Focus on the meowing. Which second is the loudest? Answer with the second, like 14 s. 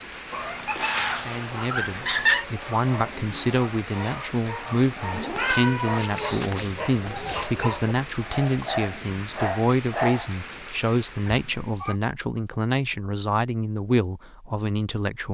2 s.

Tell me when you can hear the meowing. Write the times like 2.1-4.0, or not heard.
0.3-2.5, 5.1-7.5, 11.2-11.9.